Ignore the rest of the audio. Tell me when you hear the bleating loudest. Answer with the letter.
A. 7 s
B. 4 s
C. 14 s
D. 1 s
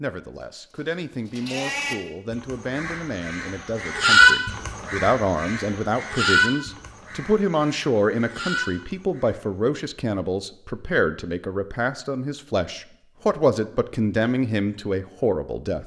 B.